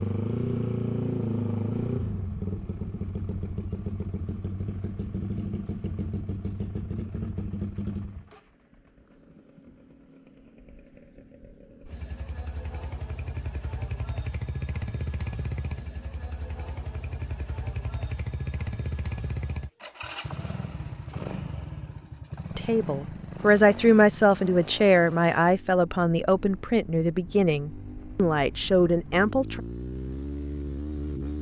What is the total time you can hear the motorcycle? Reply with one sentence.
You can hear the motorcycle for 31 seconds altogether.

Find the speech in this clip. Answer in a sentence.
You can hear the speech from 22.6 to 29.6 s.